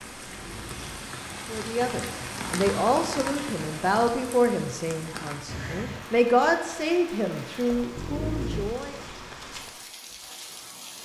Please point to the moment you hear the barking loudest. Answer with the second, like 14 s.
8 s.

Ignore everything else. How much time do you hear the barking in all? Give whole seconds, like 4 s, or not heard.
2 s.